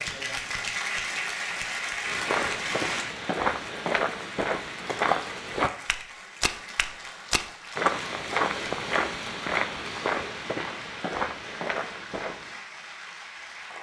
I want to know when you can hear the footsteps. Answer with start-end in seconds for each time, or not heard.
2.0-12.6.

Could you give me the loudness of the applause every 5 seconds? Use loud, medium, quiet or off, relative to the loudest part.
loud, medium, medium.